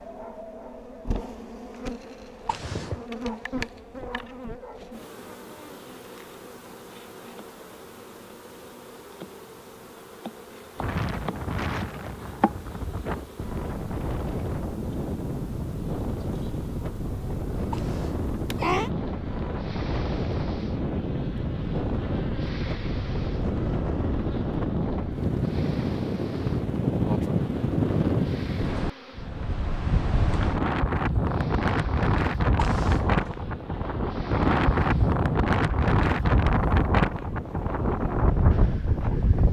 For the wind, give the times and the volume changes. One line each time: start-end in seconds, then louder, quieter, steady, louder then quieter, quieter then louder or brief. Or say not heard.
10.8-39.4 louder.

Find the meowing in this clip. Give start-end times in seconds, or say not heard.
2.5-3.0, 17.7-18.9, 32.5-33.3.